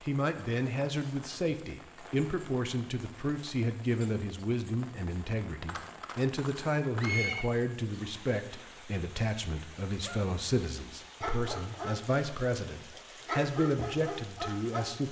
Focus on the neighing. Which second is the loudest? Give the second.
7 s.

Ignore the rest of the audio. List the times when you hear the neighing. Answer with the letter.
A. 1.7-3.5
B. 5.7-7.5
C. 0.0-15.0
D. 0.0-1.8
B.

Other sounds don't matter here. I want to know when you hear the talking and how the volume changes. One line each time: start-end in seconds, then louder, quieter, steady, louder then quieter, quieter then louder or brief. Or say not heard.
0.0-15.0 steady.